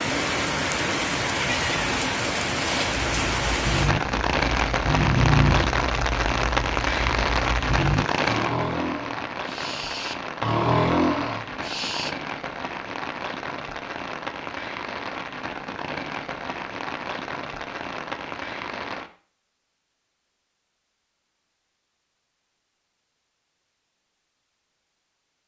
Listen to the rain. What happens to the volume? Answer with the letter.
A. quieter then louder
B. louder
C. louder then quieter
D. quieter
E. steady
D.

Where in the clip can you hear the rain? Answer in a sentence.
You can hear the rain from 0.0 to 19.1 s.